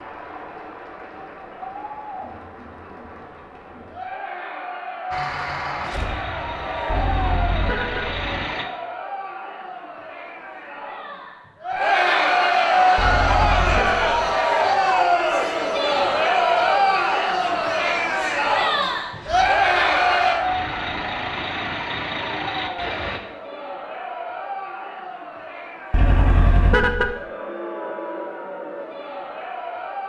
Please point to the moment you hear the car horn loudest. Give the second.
27 s.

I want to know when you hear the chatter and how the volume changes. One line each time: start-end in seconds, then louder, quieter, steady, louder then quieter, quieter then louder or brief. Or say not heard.
0.0-30.0 louder then quieter.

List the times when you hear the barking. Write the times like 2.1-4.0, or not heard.
not heard.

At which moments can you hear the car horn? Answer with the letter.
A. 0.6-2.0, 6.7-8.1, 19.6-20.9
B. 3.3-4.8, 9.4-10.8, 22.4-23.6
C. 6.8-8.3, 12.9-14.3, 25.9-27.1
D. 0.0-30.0
C.